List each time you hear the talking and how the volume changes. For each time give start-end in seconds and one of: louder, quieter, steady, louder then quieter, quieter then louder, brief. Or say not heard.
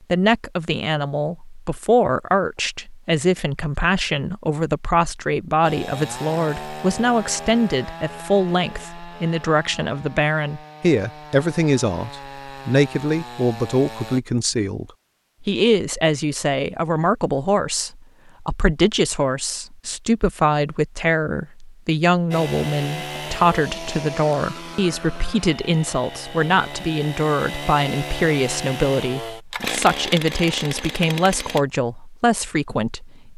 0.1-33.3 steady.